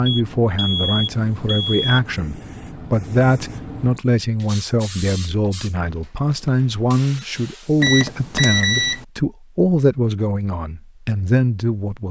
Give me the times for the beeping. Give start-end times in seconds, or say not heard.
0.1-2.0, 7.8-9.0.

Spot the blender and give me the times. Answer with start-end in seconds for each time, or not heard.
not heard.